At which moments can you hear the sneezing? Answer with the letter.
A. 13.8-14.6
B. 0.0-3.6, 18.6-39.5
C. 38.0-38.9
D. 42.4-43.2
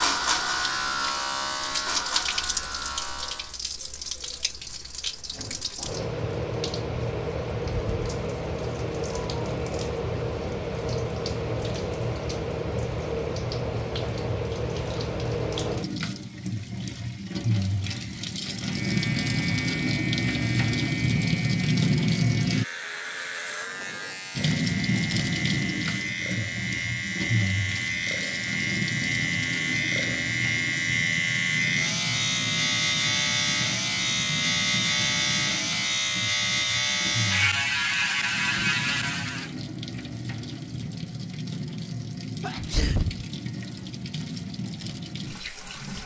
D.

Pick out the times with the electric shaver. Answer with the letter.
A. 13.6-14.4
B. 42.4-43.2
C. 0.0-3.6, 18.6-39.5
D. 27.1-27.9
C.